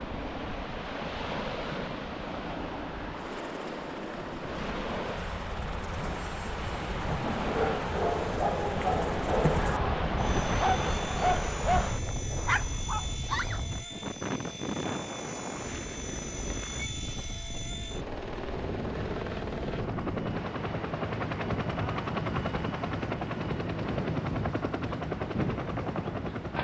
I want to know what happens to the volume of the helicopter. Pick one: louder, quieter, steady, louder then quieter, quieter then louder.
louder.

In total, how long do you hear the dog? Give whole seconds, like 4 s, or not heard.
6 s.